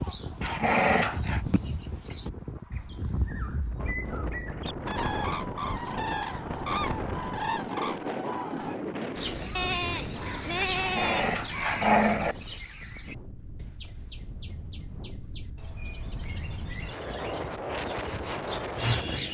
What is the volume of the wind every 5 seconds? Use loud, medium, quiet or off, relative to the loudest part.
loud, loud, medium, loud.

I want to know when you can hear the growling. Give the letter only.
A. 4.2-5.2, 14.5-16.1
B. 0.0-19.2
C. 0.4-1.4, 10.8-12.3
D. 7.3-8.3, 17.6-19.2
C.